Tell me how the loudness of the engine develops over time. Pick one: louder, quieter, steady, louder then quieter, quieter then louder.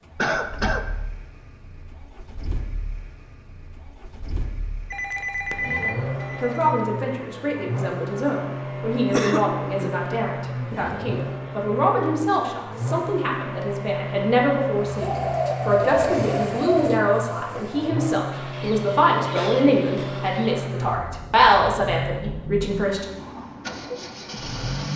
louder.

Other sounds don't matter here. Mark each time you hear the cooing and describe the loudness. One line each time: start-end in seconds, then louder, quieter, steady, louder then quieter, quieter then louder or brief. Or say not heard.
14.8-20.6 quieter.